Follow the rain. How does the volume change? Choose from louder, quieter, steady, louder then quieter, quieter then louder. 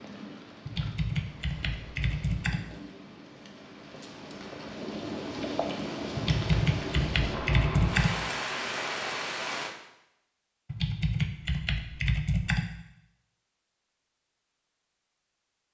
louder.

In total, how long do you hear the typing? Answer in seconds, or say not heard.
6 s.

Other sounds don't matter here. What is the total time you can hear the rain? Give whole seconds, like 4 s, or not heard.
10 s.